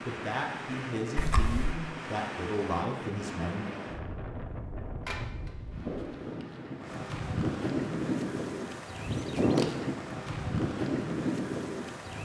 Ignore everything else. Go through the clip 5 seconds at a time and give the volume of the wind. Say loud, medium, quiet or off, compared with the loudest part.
medium, loud, loud.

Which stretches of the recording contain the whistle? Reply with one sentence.
You can't hear the whistle here.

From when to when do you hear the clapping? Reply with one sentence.
You can't hear the clapping here.